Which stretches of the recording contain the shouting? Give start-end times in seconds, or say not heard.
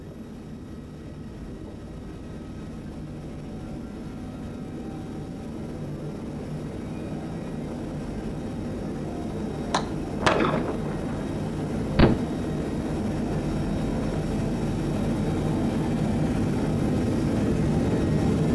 not heard.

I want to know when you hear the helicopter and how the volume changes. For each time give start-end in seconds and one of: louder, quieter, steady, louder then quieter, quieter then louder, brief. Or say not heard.
0.0-18.5 louder.